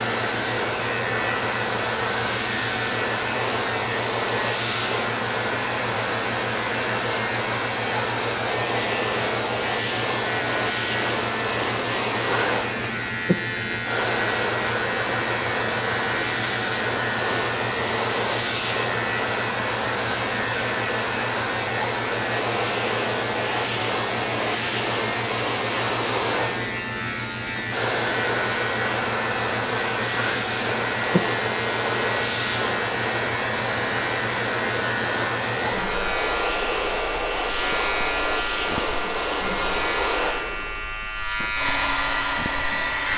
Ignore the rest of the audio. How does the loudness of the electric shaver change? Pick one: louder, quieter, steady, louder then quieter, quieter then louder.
steady.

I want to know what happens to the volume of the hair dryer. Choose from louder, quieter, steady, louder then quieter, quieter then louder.
steady.